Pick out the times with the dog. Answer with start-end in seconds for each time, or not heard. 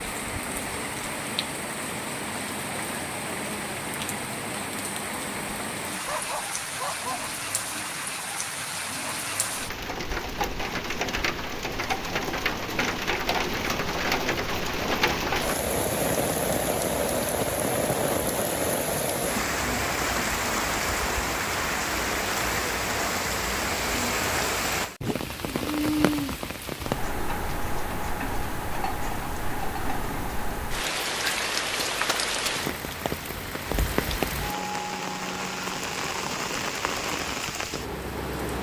6.0-7.3.